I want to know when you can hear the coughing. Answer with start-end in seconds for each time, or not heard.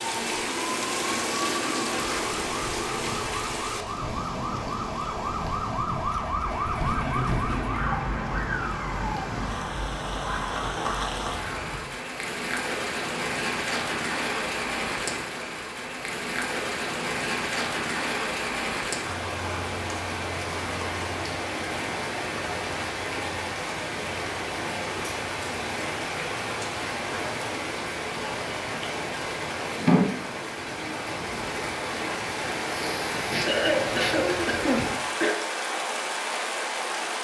32.9-35.4.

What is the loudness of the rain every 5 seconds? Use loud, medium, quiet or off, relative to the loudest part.
loud, medium, loud, loud, loud, loud, loud, loud.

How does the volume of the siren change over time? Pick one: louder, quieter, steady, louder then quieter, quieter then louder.
louder then quieter.